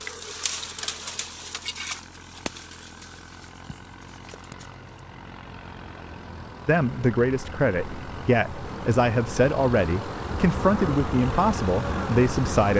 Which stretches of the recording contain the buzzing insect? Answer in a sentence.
You can hear the buzzing insect from 0.0 to 12.7 s.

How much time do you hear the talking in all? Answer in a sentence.
You can hear the talking for 6 seconds altogether.